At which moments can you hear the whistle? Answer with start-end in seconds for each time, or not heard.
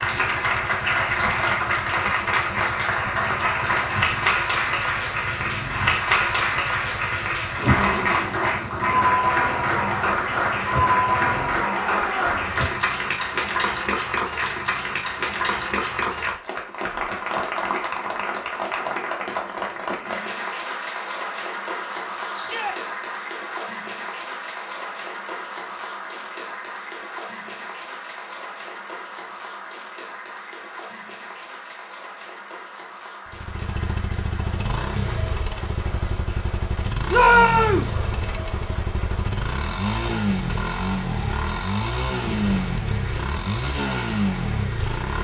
not heard.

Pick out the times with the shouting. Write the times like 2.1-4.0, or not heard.
11.7-12.3, 22.3-22.8, 37.1-37.9.